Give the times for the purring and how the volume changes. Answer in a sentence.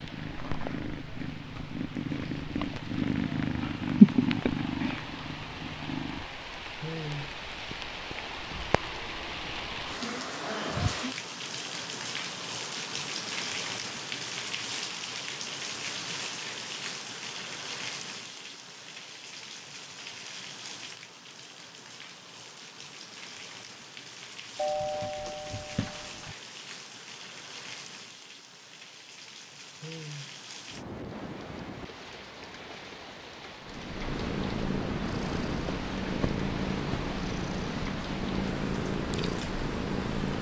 You can hear the purring from 0.0 to 6.5 s, getting louder then quieter; and from 33.6 to 40.3 s, at a steady volume.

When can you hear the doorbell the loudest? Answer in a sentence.
The volume of the doorbell peaks at 25 seconds.